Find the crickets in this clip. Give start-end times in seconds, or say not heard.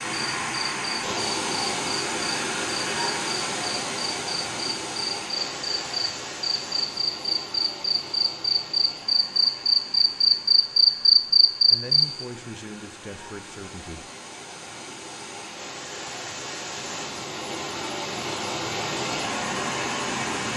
0.1-12.2.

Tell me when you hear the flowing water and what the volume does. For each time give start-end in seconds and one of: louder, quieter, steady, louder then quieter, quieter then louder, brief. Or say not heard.
0.0-20.5 quieter then louder.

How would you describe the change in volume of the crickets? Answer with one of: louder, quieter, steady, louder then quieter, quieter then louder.
louder.